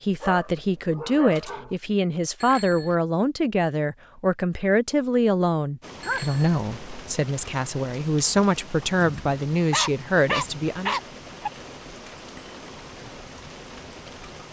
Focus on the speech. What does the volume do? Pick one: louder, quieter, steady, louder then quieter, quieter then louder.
steady.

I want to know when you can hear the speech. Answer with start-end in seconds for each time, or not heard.
0.0-10.9.